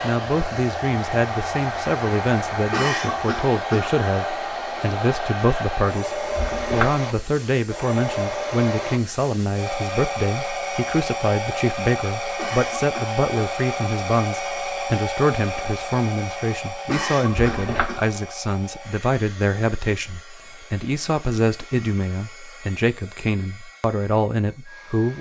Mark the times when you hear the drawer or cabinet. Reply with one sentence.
The drawer or cabinet can be heard from 6.3 to 7.0 s and from 17.3 to 17.9 s.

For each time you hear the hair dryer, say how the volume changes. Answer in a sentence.
You can hear the hair dryer from 0.0 to 25.1 s, getting quieter.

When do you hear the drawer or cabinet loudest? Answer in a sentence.
The loudest moment of the drawer or cabinet is at 7 seconds.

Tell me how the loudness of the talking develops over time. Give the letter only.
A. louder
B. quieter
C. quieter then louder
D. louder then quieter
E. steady
E.